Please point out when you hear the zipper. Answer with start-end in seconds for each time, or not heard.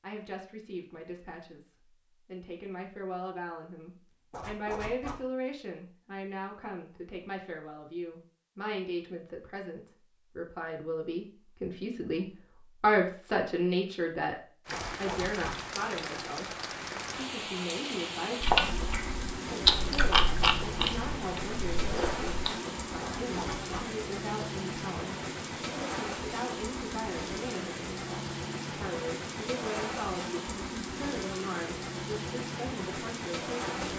4.3-5.2, 14.7-15.6, 23.0-23.9.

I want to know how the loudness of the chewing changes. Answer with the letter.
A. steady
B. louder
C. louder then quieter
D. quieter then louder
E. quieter
C.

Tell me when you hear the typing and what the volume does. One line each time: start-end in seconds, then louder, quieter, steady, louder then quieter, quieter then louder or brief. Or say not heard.
not heard.